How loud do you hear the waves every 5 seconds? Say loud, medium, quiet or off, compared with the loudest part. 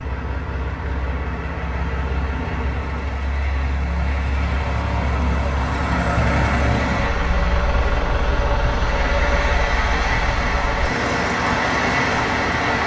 quiet, medium, loud.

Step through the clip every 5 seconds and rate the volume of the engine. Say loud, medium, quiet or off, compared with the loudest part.
medium, loud, loud.